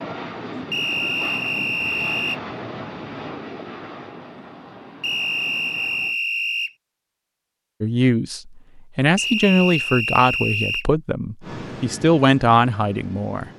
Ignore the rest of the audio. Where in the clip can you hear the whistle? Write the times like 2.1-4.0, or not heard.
0.7-2.4, 5.0-6.8, 9.2-10.8.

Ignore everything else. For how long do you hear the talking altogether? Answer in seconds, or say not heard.
6 s.